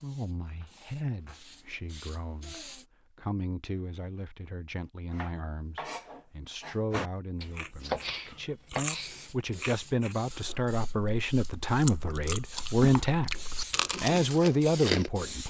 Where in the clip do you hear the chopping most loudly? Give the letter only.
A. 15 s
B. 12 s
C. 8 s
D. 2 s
C.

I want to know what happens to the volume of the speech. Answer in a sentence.
The loudness of the speech goes up.